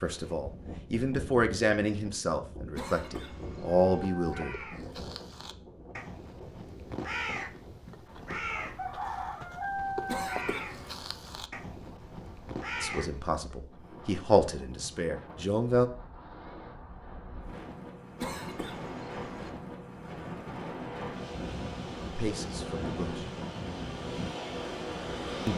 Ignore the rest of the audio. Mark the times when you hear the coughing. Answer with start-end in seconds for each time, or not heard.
2.8-4.1, 10.1-11.1, 18.1-19.5.